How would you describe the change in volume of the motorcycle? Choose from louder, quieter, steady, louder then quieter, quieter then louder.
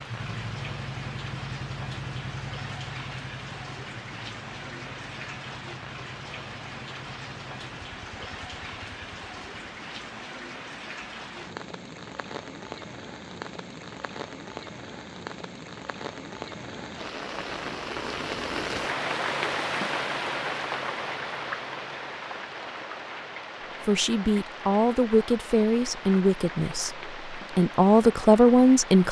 quieter.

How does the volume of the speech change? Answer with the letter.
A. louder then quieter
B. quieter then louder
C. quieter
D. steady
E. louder
E.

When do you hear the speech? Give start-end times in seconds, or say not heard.
23.8-29.0.